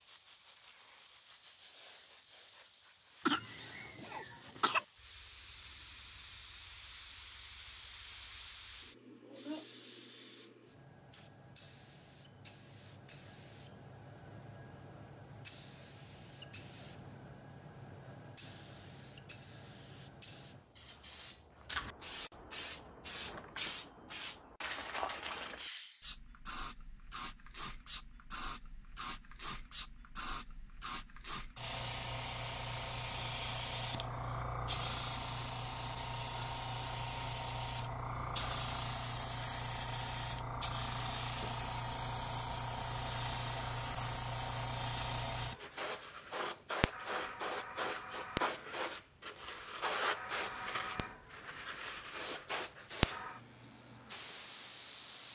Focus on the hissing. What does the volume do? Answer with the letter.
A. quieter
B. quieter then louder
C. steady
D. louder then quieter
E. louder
E.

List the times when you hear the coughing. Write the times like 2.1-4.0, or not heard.
3.2-4.8.